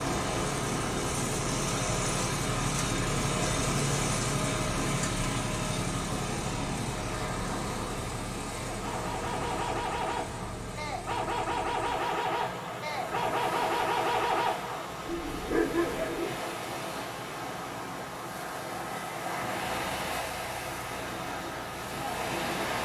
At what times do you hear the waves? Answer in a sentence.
You can hear the waves from 0.0 to 22.8 s.